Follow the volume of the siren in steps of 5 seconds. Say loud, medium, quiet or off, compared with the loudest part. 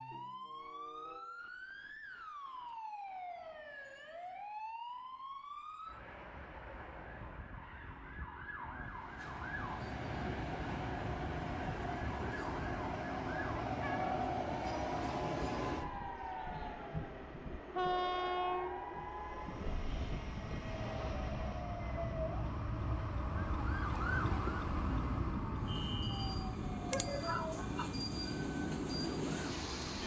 medium, medium, medium, medium, loud, loud.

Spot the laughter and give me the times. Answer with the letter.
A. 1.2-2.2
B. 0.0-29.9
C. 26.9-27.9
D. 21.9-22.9
C.